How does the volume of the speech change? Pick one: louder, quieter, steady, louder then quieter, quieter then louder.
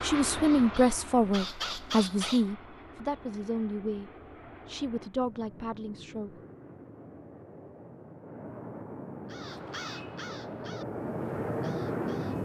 quieter.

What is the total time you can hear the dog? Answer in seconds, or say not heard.
not heard.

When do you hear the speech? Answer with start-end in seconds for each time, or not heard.
0.0-6.4.